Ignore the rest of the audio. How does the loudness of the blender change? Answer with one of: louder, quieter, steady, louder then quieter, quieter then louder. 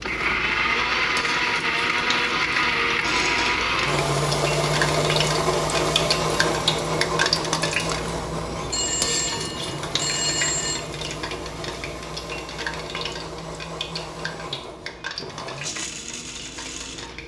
quieter.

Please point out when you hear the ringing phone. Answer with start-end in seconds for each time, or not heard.
3.0-3.6, 8.7-10.8.